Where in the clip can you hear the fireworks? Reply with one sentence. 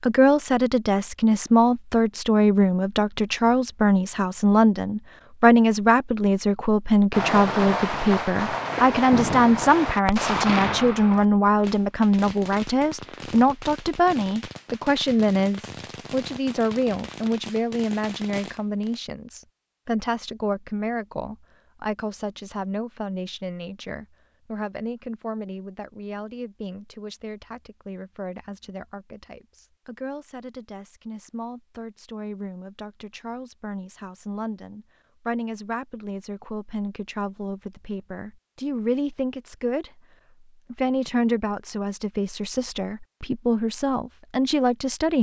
You can hear the fireworks from 7.1 to 19.0 s.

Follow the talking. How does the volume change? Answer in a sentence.
The loudness of the talking goes down, then up.